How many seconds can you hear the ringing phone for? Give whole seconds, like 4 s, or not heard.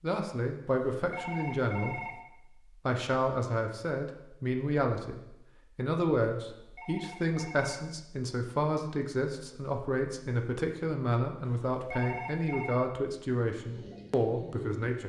4 s.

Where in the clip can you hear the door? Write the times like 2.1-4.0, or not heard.
not heard.